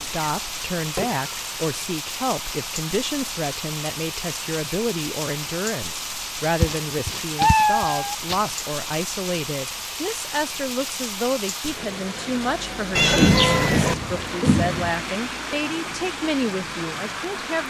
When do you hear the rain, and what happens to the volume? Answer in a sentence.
You can hear the rain from 0.0 to 17.6 s, at a steady volume.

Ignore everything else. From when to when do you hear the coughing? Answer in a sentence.
The coughing can be heard from 13.2 to 14.9 s.